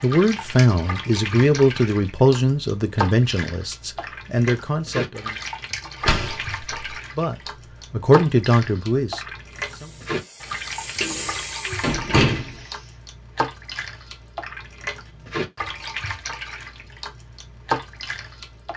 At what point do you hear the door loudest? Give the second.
12 s.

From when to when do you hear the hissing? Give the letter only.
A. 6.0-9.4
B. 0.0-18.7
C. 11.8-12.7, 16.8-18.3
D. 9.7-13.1
D.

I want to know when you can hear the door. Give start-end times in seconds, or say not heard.
6.0-6.9, 11.0-12.6.